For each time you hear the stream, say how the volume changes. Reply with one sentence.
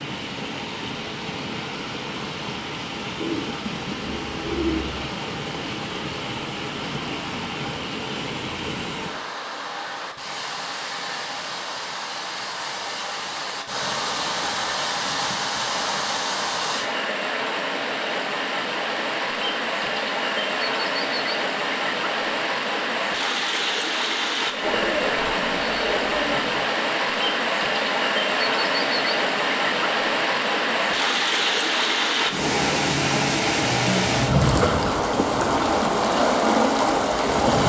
The stream can be heard from 0.0 to 37.6 s, getting louder.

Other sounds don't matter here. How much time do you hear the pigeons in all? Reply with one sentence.
You can hear the pigeons for 4 seconds altogether.